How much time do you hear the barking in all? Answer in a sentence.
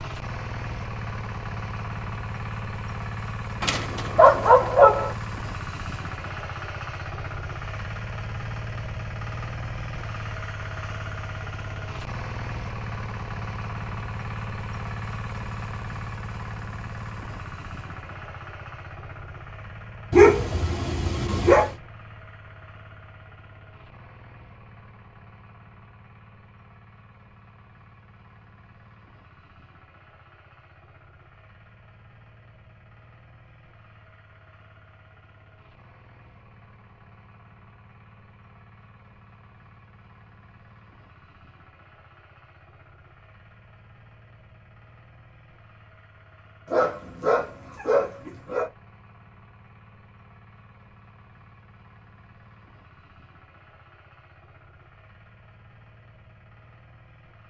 You can hear the barking for 5 seconds altogether.